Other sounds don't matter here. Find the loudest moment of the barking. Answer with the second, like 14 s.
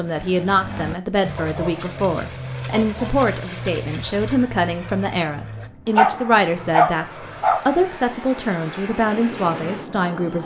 6 s.